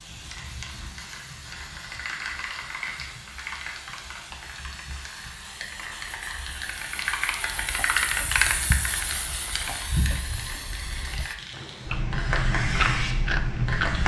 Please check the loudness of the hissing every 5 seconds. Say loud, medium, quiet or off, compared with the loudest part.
medium, loud, loud.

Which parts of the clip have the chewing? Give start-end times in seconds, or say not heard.
7.5-14.0.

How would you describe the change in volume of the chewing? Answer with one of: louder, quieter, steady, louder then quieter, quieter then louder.
louder.